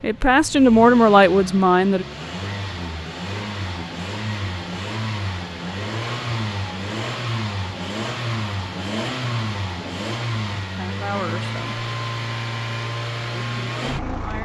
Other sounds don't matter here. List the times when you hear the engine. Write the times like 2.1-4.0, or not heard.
0.0-14.4.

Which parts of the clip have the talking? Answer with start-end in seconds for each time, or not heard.
0.0-2.0, 10.8-11.8, 13.4-14.4.